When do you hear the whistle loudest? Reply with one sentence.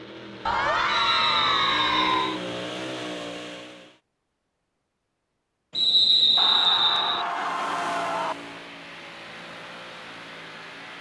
The volume of the whistle peaks at 6 seconds.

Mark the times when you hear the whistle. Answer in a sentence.
You can hear the whistle from 0.8 to 2.4 s and from 5.8 to 7.2 s.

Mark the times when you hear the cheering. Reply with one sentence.
You can hear the cheering from 0.5 to 2.4 s and from 6.3 to 8.3 s.